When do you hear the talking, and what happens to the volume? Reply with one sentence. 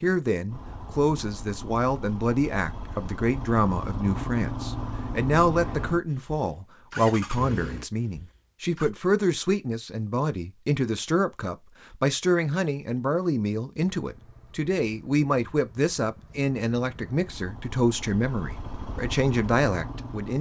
The talking can be heard from 0.0 to 20.3 s, at a steady volume.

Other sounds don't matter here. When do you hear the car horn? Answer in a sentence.
You can't hear the car horn here.